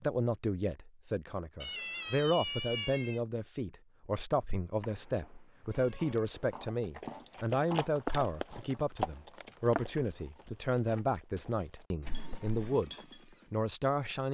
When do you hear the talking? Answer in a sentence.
You can hear the talking from 0.0 to 14.3 s.